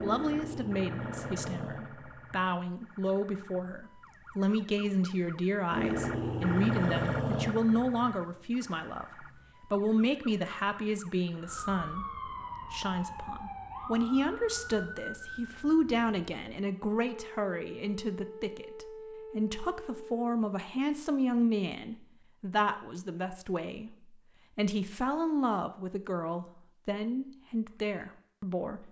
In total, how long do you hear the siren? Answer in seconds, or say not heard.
20 s.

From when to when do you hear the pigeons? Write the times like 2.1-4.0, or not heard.
not heard.